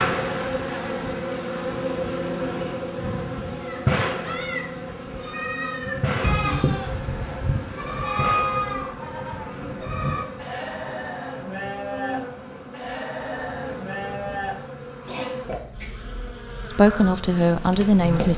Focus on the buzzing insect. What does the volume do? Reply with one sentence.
The loudness of the buzzing insect goes down.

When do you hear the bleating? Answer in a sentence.
You can hear the bleating from 3.6 to 14.6 s.